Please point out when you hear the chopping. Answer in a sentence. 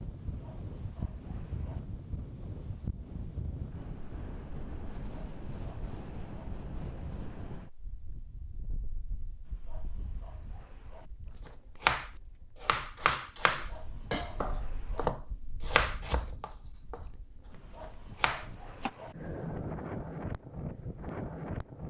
You can hear the chopping from 11.4 to 17.0 s and from 17.8 to 18.9 s.